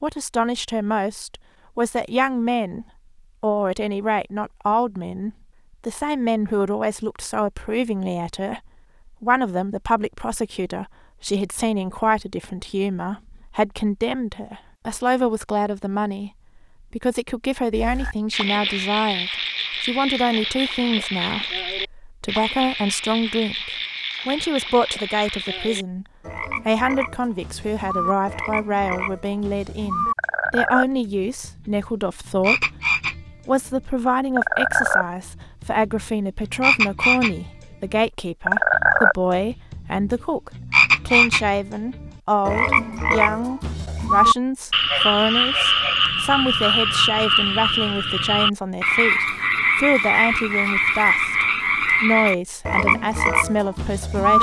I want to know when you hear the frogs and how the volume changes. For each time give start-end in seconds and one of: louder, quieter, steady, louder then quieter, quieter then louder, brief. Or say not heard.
17.7-54.3 louder.